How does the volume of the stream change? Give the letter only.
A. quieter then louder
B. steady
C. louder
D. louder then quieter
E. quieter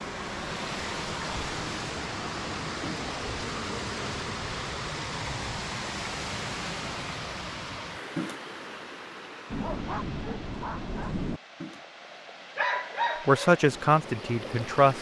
E.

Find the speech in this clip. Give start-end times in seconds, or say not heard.
13.2-14.9.